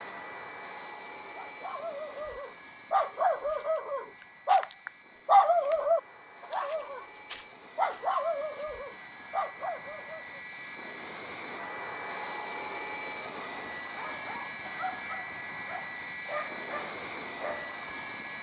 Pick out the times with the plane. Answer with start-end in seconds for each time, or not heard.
0.0-18.3.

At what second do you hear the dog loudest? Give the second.
5 s.